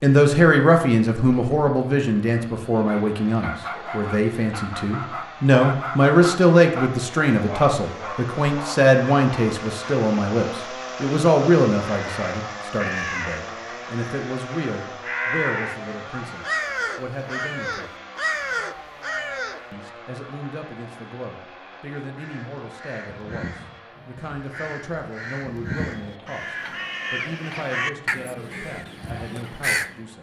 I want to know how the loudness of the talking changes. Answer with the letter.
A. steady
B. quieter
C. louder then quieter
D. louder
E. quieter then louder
B.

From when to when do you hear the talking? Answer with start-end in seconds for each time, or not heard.
0.0-17.9, 19.7-30.1.